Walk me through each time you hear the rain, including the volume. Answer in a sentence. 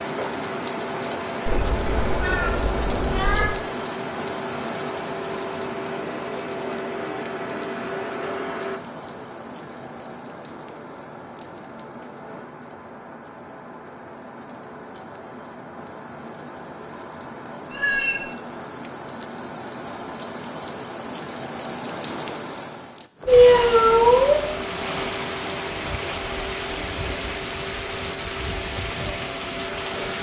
The rain can be heard from 0.0 to 30.1 s, getting quieter then louder.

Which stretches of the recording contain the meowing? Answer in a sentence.
You can hear the meowing from 1.4 to 3.5 s, from 17.7 to 18.2 s and from 23.2 to 24.6 s.